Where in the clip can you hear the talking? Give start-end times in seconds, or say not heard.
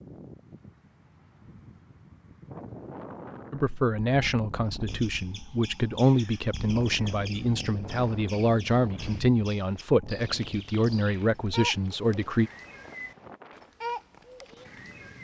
3.5-12.5.